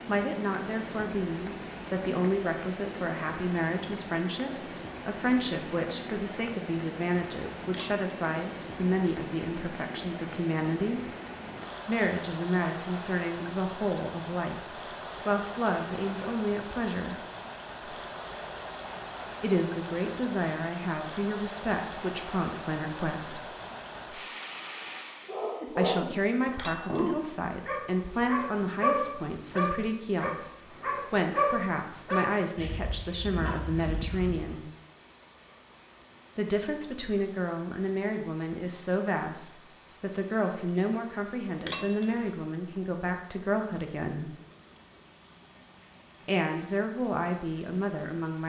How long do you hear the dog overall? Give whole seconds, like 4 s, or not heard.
9 s.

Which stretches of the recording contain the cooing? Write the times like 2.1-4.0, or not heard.
not heard.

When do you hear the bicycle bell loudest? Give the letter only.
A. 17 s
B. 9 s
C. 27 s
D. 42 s
D.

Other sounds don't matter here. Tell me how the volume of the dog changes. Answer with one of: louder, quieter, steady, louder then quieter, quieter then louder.
quieter.